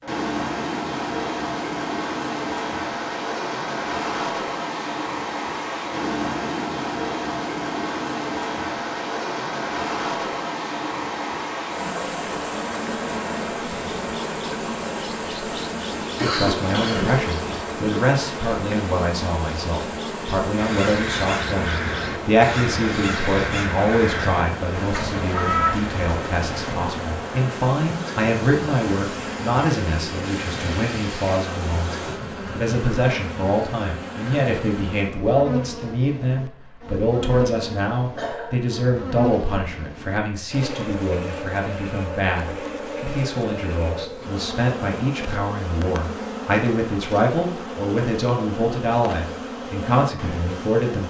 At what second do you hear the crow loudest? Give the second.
26 s.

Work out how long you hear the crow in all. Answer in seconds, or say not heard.
6 s.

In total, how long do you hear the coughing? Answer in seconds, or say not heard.
2 s.